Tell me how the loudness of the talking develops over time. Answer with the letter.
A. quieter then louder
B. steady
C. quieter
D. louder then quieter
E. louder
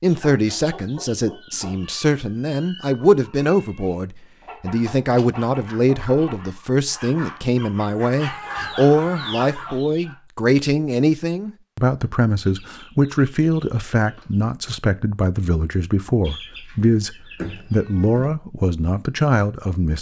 B.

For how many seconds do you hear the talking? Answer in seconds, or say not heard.
20 s.